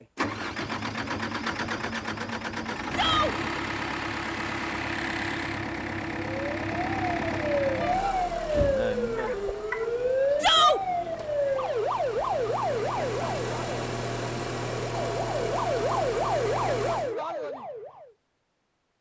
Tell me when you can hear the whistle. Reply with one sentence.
You can't hear the whistle here.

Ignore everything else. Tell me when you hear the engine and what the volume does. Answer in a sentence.
You can hear the engine from 0.0 to 17.1 s, getting quieter then louder.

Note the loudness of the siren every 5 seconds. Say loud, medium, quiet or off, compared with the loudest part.
off, loud, loud, loud.